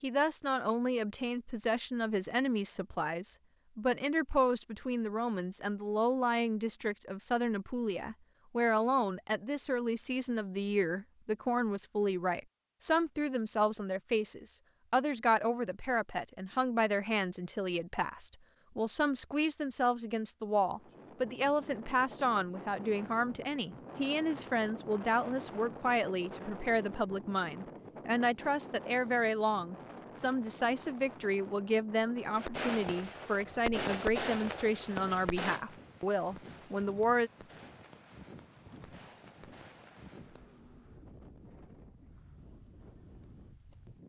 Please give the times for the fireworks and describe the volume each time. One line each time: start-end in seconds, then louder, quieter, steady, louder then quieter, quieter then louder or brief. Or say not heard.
32.4-40.6 quieter.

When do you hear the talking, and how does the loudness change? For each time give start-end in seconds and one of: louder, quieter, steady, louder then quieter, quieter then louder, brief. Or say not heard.
0.0-37.3 steady.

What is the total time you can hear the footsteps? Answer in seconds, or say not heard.
not heard.